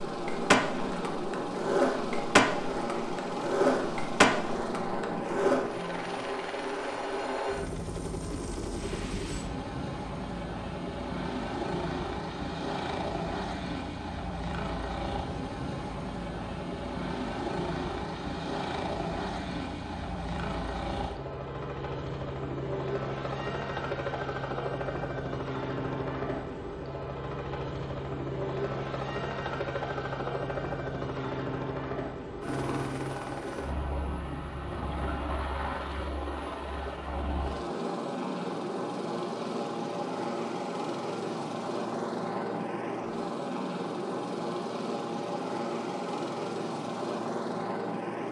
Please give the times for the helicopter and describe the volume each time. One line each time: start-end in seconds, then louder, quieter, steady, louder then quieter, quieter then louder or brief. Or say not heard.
0.0-48.2 steady.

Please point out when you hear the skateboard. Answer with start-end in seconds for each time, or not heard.
0.1-5.7.